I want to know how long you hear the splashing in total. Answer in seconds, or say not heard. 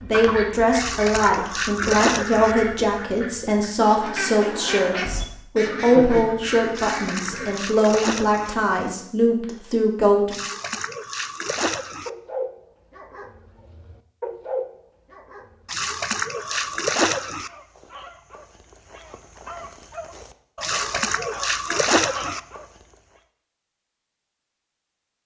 9 s.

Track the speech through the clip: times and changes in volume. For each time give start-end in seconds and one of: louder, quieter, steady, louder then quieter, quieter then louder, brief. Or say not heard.
0.0-10.3 steady.